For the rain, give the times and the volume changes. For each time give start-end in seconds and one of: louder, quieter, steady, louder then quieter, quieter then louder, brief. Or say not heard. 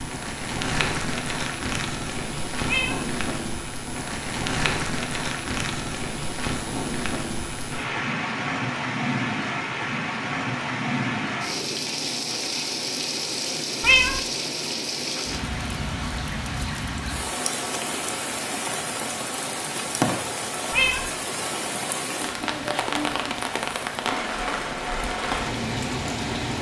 0.0-26.5 steady.